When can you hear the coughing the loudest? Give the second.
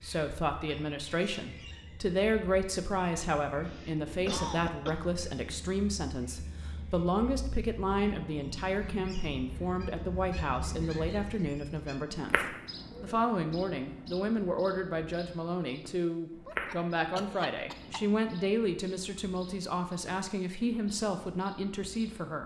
4 s.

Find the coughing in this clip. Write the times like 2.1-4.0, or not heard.
3.6-5.1, 16.4-18.0.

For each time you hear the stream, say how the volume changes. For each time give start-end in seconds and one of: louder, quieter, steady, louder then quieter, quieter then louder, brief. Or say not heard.
not heard.